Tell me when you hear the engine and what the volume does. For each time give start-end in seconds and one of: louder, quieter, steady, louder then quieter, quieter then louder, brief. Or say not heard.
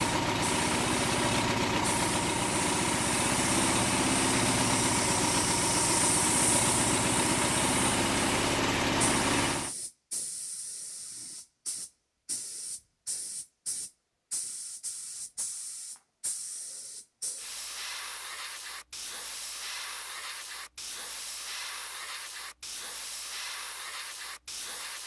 0.0-9.8 steady.